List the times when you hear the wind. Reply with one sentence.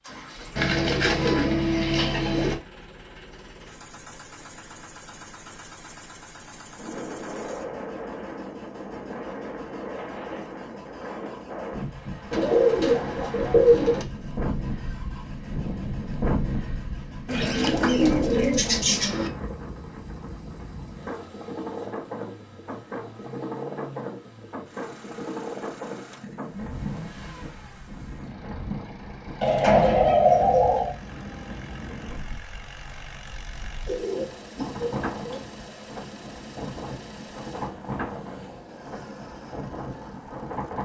You can hear the wind from 6.8 to 40.7 s.